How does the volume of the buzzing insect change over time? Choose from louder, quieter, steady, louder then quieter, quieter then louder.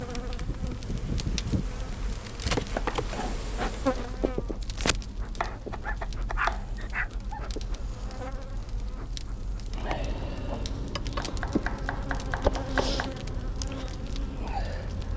quieter then louder.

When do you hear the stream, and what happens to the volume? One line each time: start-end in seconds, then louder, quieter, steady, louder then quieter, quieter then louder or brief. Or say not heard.
not heard.